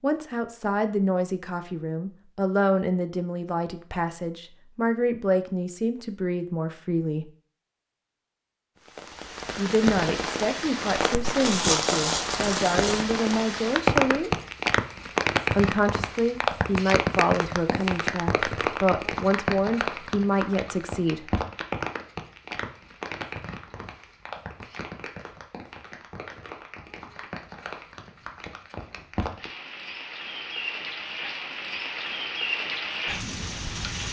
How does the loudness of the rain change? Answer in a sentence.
The volume of the rain goes down, then up.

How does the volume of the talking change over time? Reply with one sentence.
The loudness of the talking stays about the same.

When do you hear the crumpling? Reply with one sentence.
The crumpling can be heard from 11.4 to 13.1 s.